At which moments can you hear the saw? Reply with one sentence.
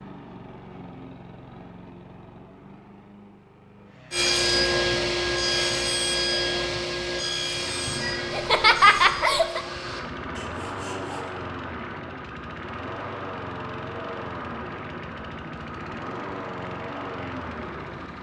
You can hear the saw from 4.1 to 11.3 s.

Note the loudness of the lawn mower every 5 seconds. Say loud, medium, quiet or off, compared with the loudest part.
medium, medium, loud, loud.